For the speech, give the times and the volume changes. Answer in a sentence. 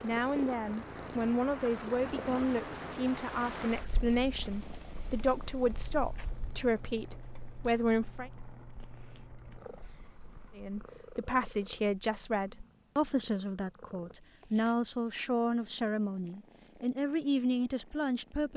The speech can be heard from 0.0 to 8.3 s, at a steady volume; and from 10.6 to 18.5 s, at a steady volume.